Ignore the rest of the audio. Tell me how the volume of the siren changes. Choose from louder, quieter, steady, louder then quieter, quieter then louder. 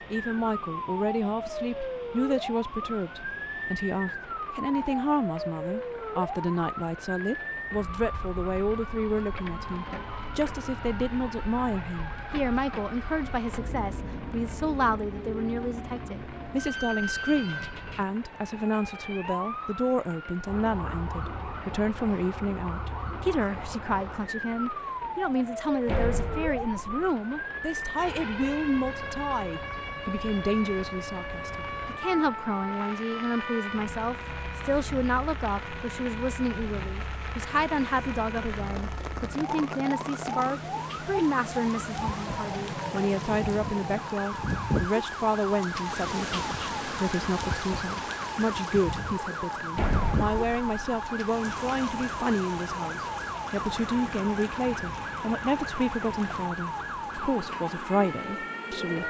steady.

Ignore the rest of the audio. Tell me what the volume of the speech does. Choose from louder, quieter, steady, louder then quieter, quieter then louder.
steady.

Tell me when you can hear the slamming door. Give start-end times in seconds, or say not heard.
25.9-27.1, 49.8-50.8.